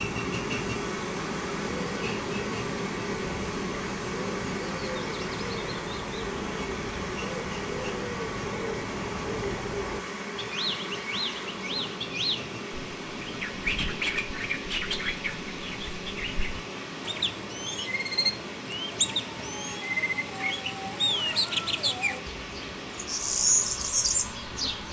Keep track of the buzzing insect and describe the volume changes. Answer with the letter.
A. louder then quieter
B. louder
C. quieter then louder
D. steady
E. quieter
E.